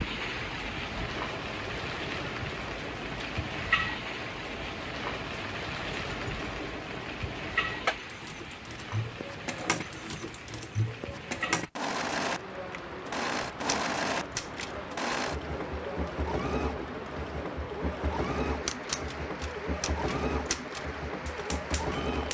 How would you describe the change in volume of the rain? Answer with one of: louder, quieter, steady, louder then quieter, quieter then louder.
quieter.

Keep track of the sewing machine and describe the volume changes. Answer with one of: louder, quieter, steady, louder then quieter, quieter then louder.
louder.